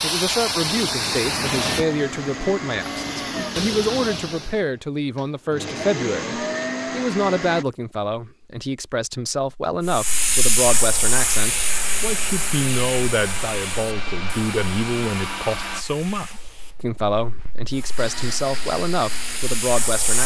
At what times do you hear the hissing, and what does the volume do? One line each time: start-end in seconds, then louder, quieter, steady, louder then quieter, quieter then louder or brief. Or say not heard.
0.0-4.7 quieter then louder
9.8-20.2 quieter then louder.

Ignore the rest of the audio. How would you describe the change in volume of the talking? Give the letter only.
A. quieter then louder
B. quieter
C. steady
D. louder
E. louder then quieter
C.